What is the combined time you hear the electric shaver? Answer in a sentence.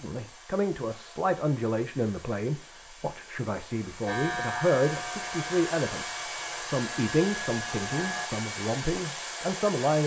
The electric shaver can be heard for 4 seconds in total.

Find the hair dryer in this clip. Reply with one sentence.
The hair dryer can be heard from 0.0 to 10.0 s.